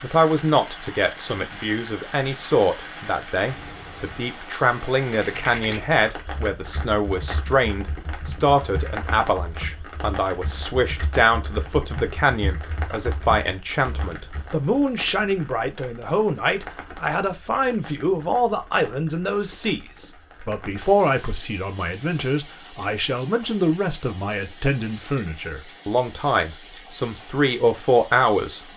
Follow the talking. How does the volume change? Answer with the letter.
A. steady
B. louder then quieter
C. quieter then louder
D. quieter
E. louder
A.